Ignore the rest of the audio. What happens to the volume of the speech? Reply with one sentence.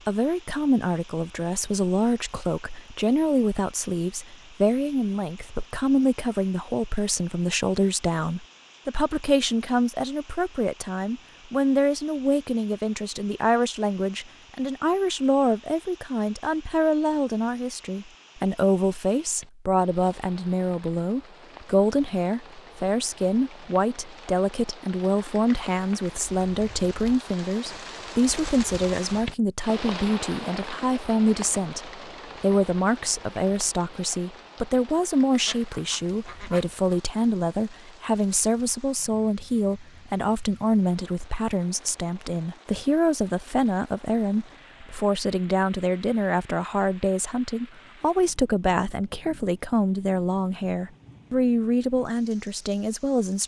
The loudness of the speech stays about the same.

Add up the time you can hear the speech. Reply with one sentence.
You can hear the speech for 53 seconds altogether.